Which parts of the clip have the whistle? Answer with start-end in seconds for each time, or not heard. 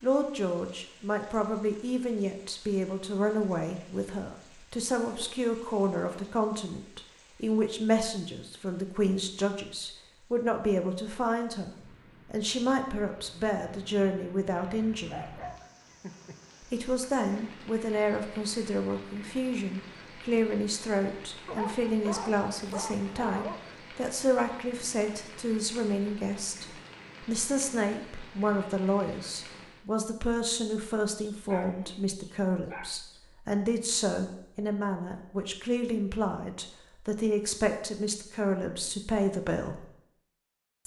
not heard.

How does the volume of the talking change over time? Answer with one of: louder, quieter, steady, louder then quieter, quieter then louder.
steady.